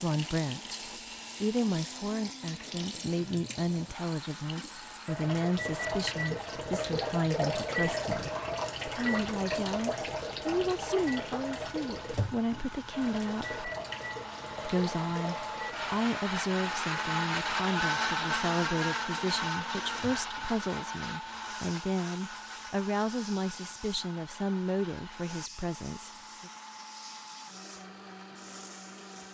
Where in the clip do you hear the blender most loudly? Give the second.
18 s.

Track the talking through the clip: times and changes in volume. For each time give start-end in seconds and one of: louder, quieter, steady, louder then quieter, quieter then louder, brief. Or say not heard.
0.0-0.8 brief
1.4-13.7 steady
14.7-26.5 steady.